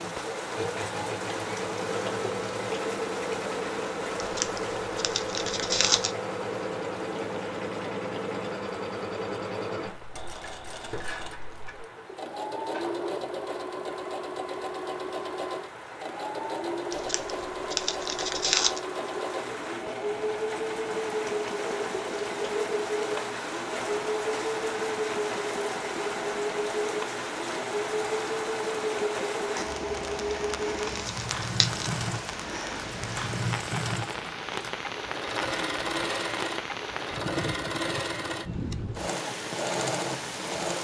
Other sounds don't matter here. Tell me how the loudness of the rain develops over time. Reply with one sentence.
The volume of the rain goes down, then up.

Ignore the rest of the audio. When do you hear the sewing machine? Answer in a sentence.
The sewing machine can be heard from 0.0 to 40.8 s.